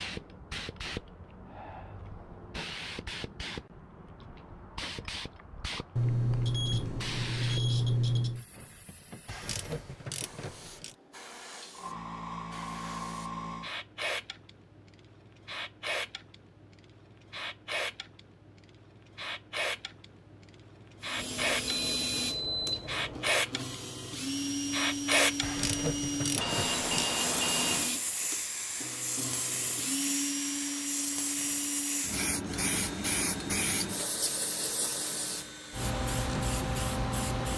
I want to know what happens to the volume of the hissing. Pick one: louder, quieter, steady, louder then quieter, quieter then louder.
louder.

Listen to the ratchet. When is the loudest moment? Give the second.
26 s.